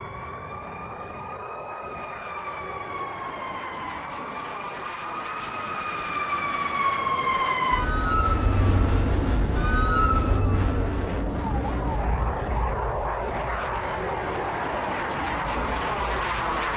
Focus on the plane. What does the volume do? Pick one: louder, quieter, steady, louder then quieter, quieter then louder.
louder.